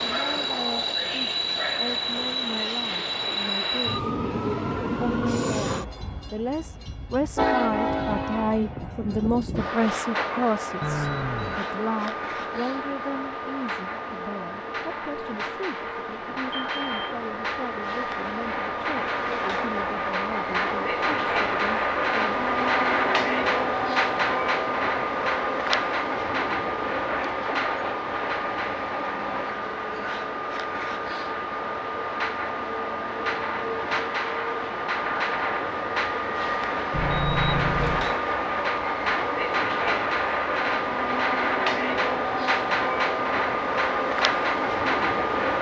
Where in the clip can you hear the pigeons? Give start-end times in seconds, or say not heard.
not heard.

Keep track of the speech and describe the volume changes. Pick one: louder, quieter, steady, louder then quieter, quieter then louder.
louder then quieter.